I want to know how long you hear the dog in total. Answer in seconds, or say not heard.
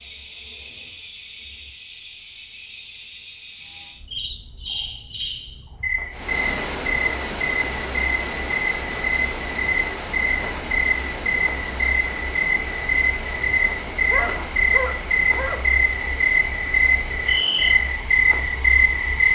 2 s.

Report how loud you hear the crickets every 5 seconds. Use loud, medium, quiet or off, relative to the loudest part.
quiet, medium, loud, loud.